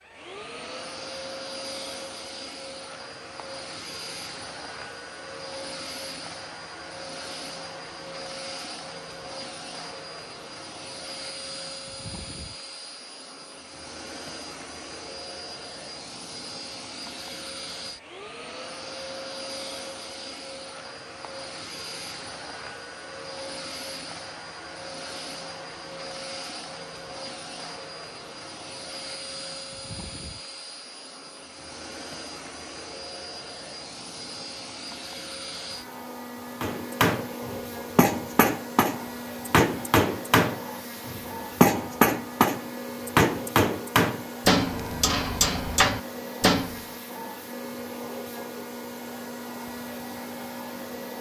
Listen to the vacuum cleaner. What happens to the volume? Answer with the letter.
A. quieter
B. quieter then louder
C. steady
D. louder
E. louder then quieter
C.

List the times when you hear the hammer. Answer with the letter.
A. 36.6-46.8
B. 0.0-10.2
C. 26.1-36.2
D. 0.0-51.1
A.